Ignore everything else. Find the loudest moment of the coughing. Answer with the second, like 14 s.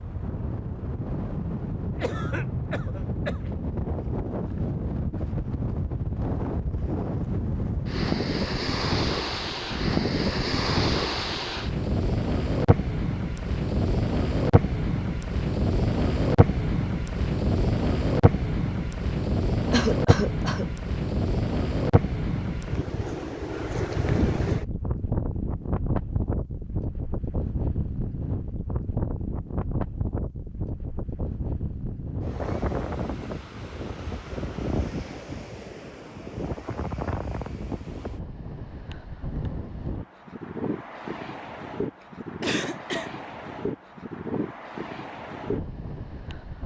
20 s.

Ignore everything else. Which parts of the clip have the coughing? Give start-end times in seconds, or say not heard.
1.9-3.5, 19.7-20.6, 42.4-43.1.